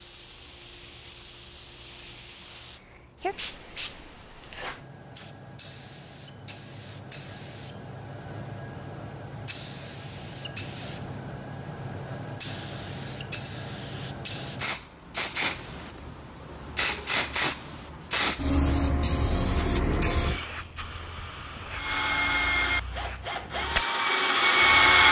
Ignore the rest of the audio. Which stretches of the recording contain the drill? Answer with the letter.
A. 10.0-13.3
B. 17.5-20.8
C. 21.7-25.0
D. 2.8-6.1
C.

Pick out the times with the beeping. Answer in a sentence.
You can't hear the beeping here.